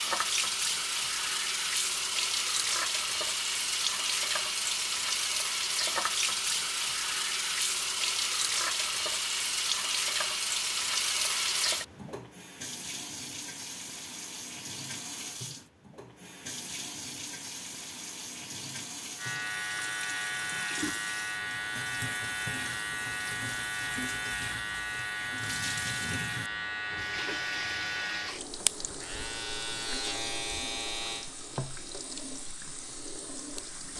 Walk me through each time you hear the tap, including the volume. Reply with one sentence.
The tap can be heard from 0.0 to 33.9 s, getting quieter.